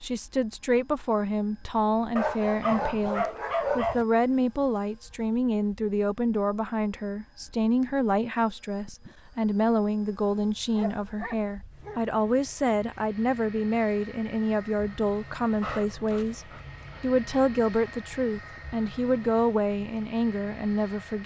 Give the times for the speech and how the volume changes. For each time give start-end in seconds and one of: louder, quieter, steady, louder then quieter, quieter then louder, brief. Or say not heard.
0.0-21.2 steady.